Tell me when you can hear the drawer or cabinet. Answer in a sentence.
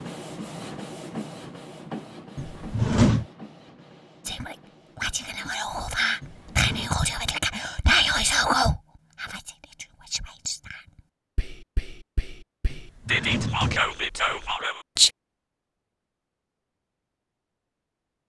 You can hear the drawer or cabinet from 2.4 to 3.2 s, from 6.2 to 6.9 s and from 12.7 to 14.6 s.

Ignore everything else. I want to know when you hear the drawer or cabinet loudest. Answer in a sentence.
The volume of the drawer or cabinet peaks at 3 seconds.